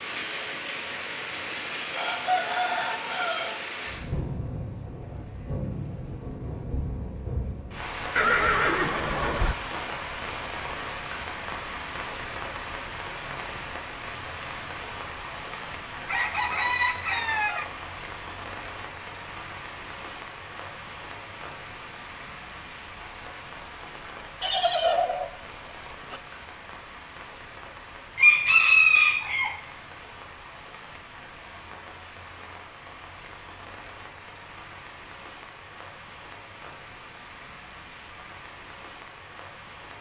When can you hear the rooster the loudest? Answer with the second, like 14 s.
29 s.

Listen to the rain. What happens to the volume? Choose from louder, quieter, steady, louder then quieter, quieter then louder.
quieter.